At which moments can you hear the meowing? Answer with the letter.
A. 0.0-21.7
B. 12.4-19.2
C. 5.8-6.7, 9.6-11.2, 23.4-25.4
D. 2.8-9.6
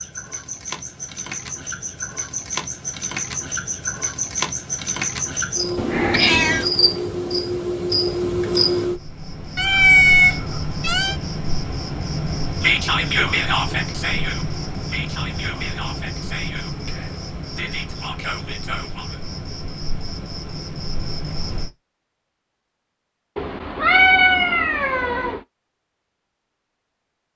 C.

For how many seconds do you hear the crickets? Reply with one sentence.
The crickets can be heard for 22 seconds in total.